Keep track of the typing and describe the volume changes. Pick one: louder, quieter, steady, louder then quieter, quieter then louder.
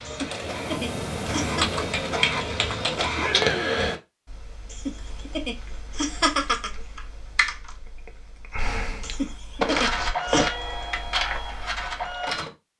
quieter then louder.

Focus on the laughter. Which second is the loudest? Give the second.
6 s.